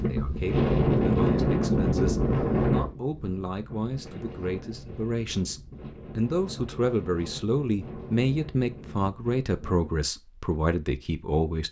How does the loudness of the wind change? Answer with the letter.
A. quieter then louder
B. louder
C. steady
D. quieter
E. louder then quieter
D.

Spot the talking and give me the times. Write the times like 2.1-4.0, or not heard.
0.1-11.6.